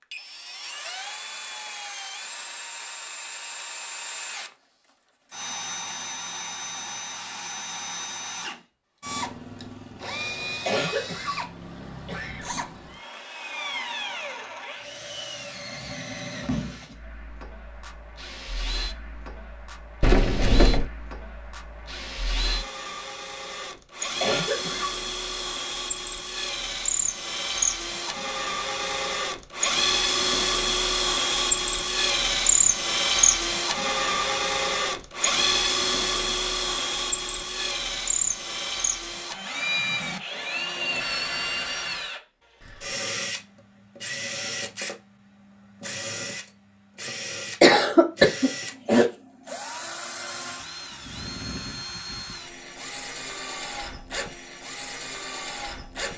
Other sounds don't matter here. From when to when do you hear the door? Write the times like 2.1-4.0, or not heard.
20.0-20.9.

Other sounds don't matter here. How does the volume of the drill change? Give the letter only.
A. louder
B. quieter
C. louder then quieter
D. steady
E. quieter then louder
C.